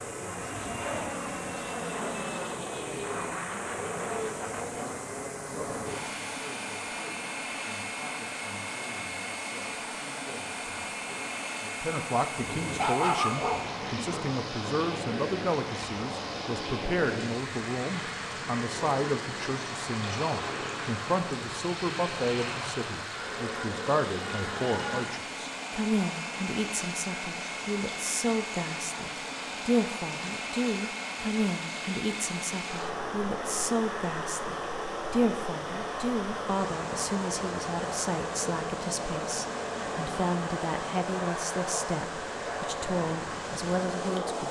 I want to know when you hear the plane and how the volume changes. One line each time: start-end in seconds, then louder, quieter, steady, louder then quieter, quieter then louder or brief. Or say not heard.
0.0-44.4 steady.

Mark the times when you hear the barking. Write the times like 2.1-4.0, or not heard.
12.3-14.2.